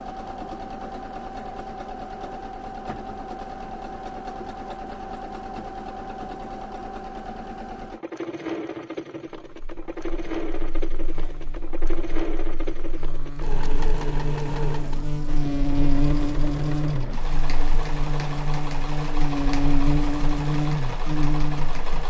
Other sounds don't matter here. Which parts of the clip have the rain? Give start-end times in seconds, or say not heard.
not heard.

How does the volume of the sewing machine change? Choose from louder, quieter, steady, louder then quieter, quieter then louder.
steady.